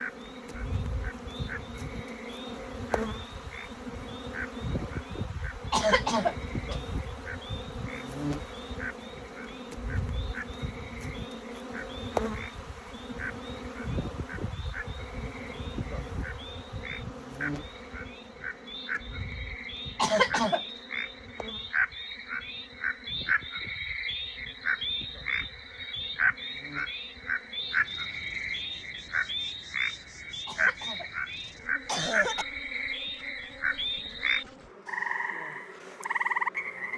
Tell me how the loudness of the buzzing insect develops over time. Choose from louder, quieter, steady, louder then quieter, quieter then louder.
quieter.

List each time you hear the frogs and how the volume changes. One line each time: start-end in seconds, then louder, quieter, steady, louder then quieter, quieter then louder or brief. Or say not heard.
0.0-36.9 louder.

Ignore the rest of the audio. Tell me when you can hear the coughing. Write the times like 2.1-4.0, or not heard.
5.7-6.8, 19.9-20.6, 30.4-32.5.